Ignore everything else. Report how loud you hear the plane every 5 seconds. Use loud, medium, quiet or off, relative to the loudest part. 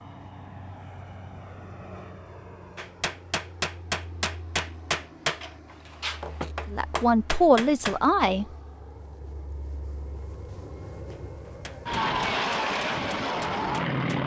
quiet, quiet, loud.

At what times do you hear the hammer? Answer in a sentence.
You can hear the hammer from 2.8 to 8.0 s and from 11.1 to 14.2 s.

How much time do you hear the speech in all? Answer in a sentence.
You can hear the speech for 2 seconds altogether.